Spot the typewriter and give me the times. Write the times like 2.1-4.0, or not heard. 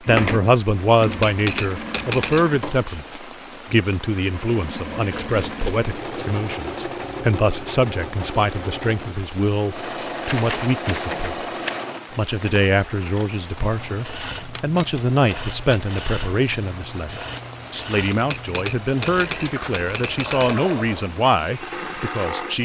1.0-2.6, 5.1-6.4, 10.2-11.9, 14.4-16.1, 18.1-20.6.